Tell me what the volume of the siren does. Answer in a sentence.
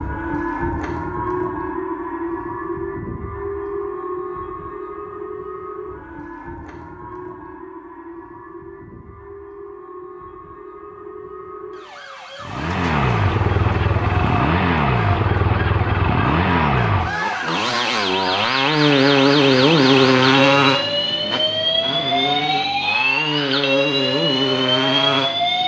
The loudness of the siren goes down, then up.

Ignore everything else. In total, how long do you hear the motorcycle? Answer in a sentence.
The motorcycle can be heard for 13 seconds in total.